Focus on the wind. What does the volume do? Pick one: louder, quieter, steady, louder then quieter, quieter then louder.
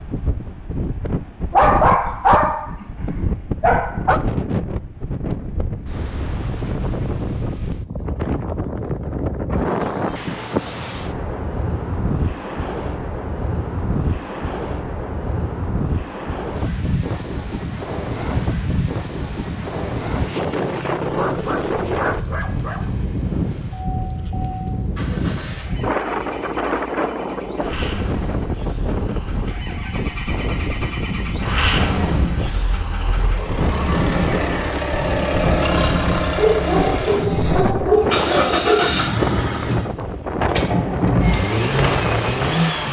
steady.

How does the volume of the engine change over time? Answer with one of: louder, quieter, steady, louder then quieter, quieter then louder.
louder.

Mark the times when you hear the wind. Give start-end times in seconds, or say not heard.
0.0-42.8.